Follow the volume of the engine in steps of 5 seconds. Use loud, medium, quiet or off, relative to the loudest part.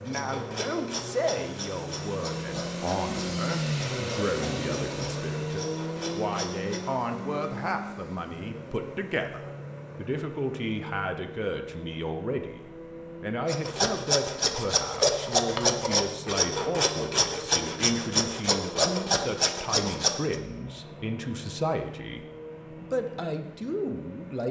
loud, loud, medium, medium, medium.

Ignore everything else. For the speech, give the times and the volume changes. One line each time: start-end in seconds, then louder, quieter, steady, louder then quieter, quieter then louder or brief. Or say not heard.
0.0-24.4 steady.